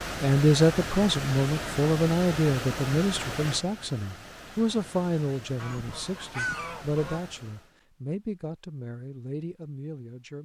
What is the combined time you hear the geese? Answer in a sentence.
You can hear the geese for 2 seconds altogether.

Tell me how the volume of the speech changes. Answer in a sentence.
The volume of the speech goes down.